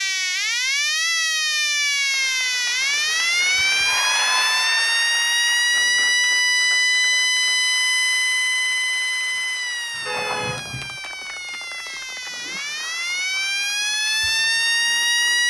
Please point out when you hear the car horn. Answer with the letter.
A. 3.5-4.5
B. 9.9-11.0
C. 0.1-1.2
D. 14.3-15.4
B.